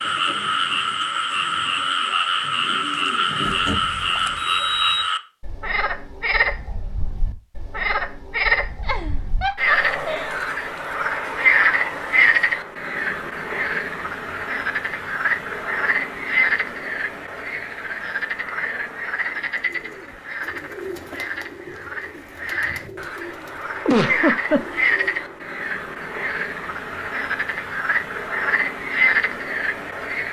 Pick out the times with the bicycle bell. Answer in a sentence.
You can hear the bicycle bell from 3.6 to 5.0 s.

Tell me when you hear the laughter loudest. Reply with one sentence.
The loudest moment of the laughter is at 24 seconds.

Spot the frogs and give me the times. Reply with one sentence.
The frogs can be heard from 0.0 to 30.2 s.